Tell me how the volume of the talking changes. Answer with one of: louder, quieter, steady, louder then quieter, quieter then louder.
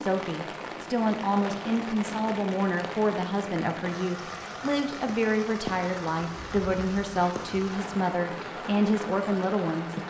steady.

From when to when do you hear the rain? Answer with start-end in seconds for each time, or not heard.
0.0-10.0.